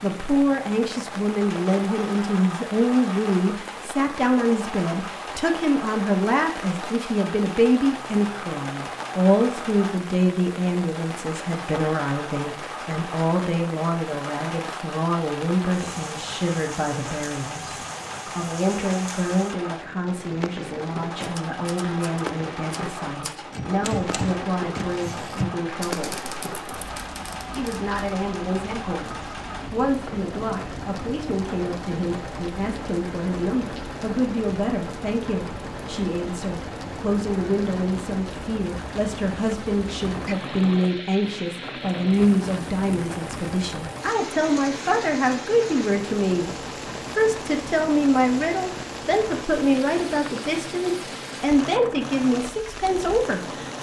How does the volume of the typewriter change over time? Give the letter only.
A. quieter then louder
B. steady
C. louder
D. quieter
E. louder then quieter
E.